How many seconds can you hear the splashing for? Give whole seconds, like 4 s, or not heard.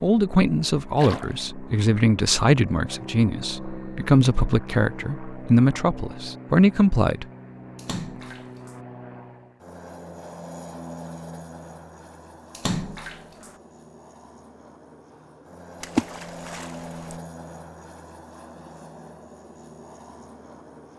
4 s.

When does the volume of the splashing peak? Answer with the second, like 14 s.
16 s.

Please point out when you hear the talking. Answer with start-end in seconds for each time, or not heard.
0.0-7.2.